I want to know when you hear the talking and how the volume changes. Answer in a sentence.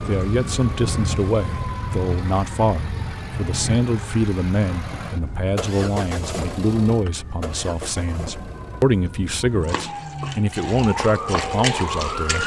You can hear the talking from 0.0 to 12.4 s, at a steady volume.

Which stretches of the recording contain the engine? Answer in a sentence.
The engine can be heard from 0.0 to 12.4 s.